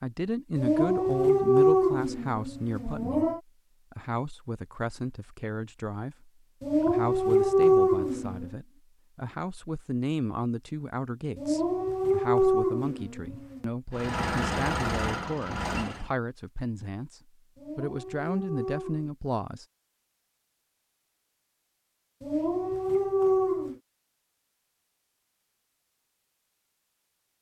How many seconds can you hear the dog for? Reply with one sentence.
You can hear the dog for 10 seconds altogether.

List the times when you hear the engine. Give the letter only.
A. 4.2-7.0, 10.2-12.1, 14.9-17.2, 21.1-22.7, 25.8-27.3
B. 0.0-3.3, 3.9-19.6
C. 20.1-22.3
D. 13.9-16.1
D.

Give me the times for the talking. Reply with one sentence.
The talking can be heard from 0.0 to 3.3 s and from 3.9 to 19.6 s.